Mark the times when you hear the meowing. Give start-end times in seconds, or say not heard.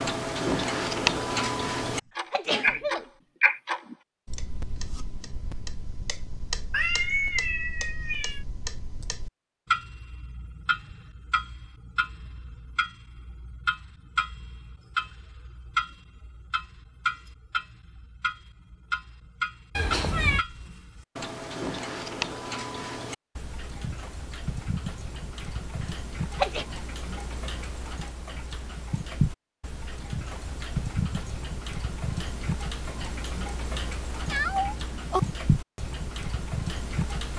6.7-8.4, 19.8-20.4, 34.2-35.2.